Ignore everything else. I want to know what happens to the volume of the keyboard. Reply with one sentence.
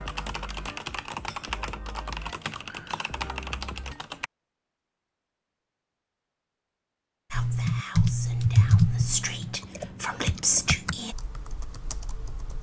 The volume of the keyboard goes up, then down.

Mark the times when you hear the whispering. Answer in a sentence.
The whispering can be heard from 7.3 to 11.2 s.